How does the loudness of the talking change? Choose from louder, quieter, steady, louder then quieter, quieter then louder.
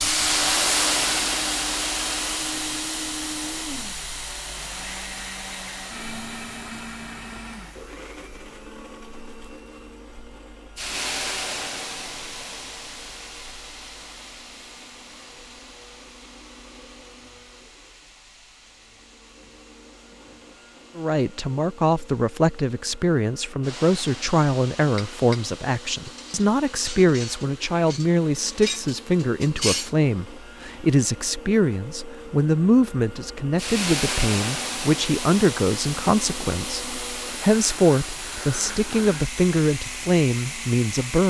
steady.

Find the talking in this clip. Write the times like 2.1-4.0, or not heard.
20.9-41.2.